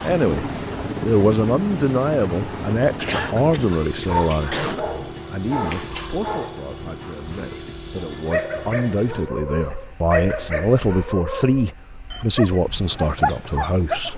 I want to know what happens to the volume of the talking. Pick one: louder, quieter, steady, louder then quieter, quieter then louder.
quieter then louder.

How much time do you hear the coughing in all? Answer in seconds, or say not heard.
2 s.